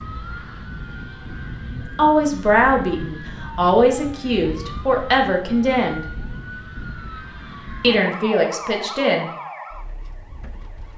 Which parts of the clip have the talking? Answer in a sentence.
The talking can be heard from 1.7 to 6.0 s and from 7.8 to 9.3 s.